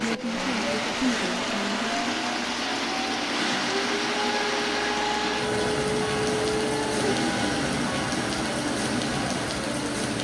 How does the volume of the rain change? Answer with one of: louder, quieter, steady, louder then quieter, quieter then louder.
steady.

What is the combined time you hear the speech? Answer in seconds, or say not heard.
2 s.